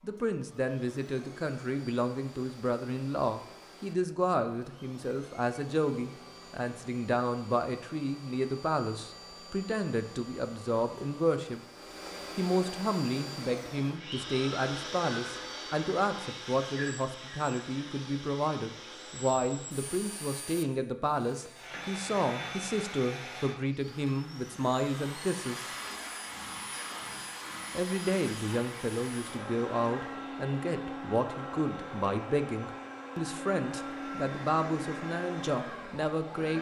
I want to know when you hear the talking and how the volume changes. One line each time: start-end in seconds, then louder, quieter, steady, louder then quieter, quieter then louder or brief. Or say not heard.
0.0-11.6 steady
12.3-25.7 steady
27.7-36.5 steady.